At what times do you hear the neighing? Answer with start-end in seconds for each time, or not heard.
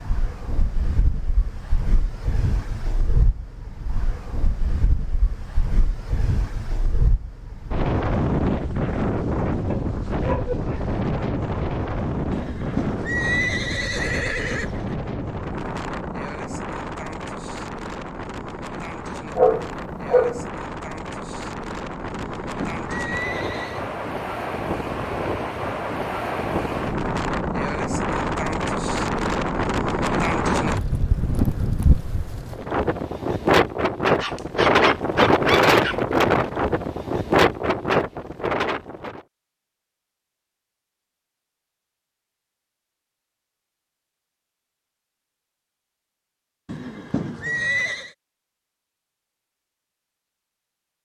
12.3-14.9, 22.1-23.9, 46.6-48.1.